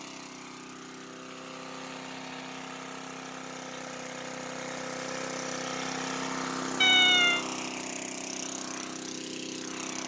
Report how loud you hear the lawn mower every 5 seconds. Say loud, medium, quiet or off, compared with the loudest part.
medium, loud.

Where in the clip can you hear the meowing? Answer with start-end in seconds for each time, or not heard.
6.8-7.5.